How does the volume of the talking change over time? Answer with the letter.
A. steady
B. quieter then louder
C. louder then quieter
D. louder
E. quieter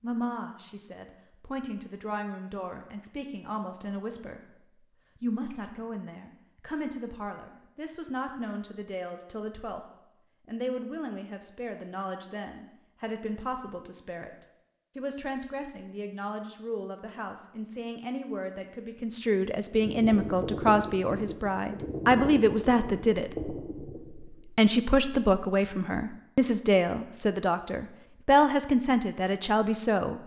D.